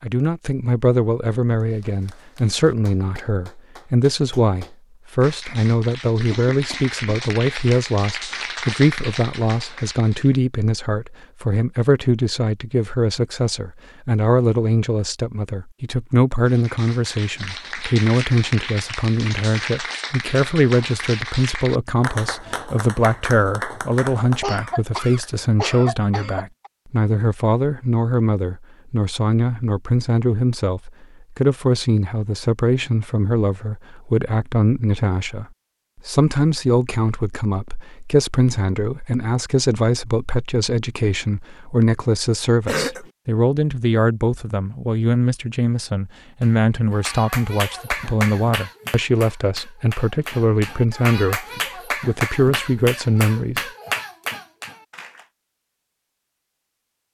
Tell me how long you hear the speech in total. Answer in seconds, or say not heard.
53 s.